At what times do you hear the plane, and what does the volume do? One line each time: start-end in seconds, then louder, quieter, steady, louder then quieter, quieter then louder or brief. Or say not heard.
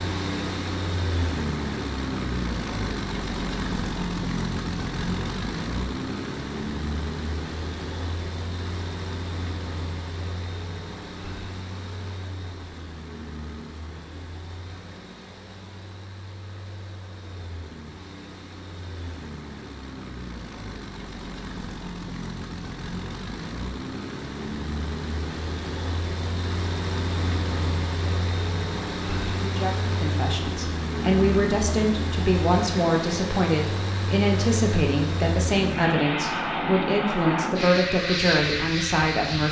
0.0-39.4 quieter then louder.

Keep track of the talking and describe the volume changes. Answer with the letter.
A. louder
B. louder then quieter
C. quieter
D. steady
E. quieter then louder
D.